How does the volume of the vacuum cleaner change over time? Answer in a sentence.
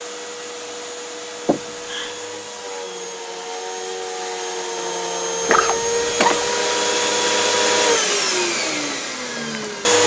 The volume of the vacuum cleaner goes up.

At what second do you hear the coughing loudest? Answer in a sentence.
The volume of the coughing peaks at 6 seconds.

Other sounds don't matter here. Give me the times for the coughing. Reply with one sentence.
The coughing can be heard from 1.4 to 2.1 s and from 5.5 to 6.5 s.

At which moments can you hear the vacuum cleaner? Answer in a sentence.
You can hear the vacuum cleaner from 0.0 to 10.0 s.